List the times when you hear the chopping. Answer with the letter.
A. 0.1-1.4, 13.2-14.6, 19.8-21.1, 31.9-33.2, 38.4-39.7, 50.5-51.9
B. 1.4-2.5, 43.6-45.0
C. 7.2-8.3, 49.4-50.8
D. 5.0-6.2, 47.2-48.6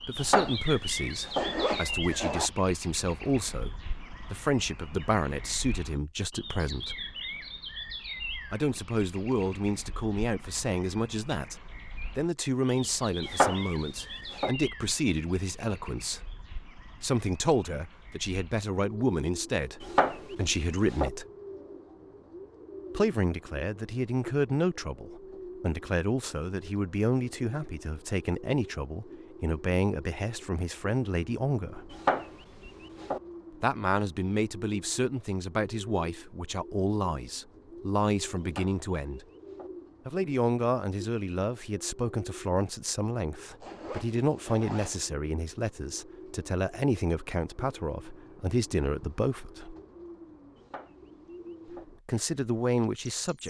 A.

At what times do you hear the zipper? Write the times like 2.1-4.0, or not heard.
1.4-2.5, 43.6-45.0.